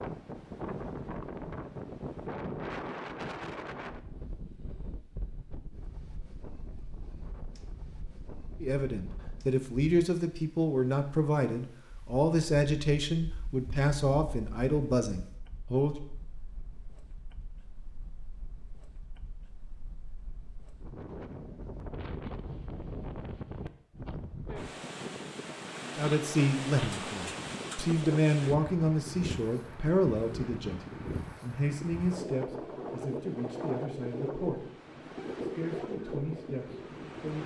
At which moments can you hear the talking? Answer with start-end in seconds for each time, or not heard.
8.6-16.0, 25.9-37.4.